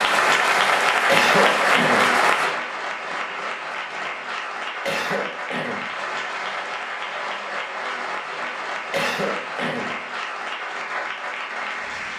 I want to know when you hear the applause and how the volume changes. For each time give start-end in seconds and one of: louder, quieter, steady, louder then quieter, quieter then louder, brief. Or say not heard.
0.0-12.1 quieter.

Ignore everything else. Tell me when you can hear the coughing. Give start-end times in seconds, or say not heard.
1.1-2.1, 4.8-5.9, 8.9-9.9.